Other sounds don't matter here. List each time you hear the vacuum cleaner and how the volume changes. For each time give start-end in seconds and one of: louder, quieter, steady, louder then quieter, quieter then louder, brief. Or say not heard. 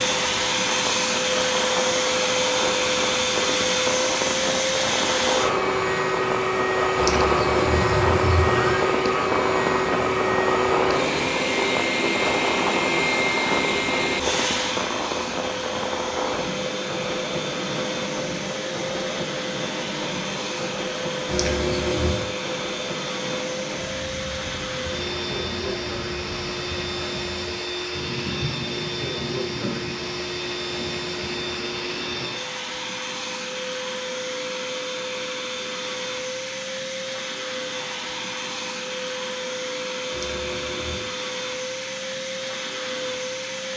0.0-43.7 quieter.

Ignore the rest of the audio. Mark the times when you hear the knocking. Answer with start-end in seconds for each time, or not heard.
not heard.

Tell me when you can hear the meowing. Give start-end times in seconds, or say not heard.
7.0-8.9, 21.2-22.3, 40.1-41.1.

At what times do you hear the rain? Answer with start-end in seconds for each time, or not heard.
0.0-32.4.